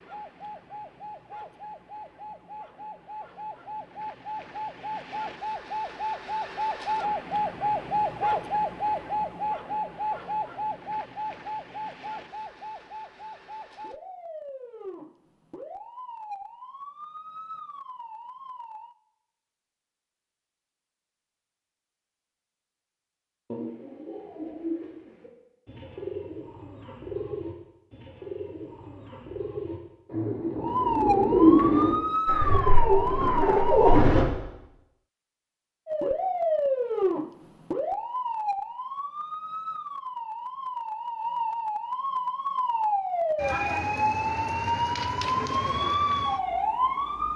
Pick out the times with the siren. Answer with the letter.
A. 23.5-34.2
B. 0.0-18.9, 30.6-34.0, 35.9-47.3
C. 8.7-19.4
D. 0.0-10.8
B.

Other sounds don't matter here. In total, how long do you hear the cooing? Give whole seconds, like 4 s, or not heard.
11 s.